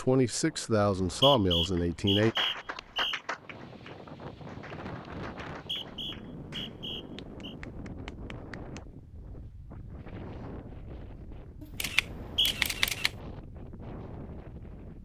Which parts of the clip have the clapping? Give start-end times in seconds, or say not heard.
1.8-8.8.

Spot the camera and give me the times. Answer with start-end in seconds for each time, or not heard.
11.6-13.1.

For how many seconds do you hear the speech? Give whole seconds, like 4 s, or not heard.
2 s.